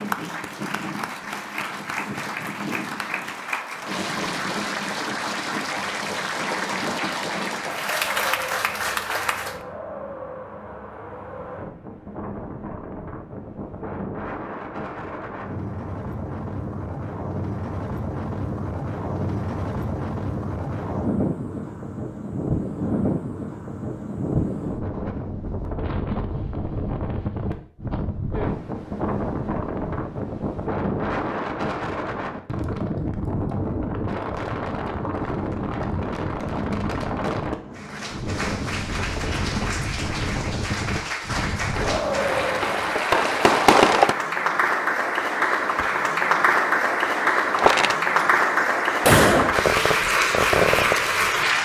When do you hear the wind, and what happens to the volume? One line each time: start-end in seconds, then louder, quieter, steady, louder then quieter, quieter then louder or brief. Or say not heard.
0.0-43.0 louder.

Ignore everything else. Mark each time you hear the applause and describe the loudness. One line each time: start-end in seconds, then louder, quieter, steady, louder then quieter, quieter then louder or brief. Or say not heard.
0.0-9.6 louder
37.8-51.6 louder.